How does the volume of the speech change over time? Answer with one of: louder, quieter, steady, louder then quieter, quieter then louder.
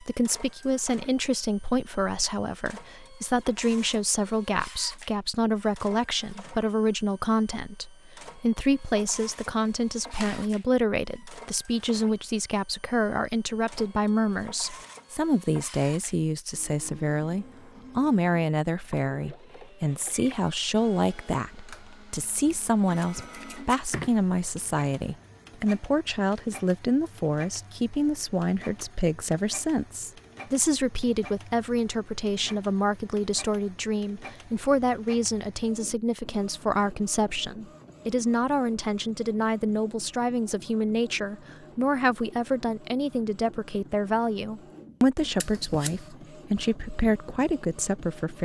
steady.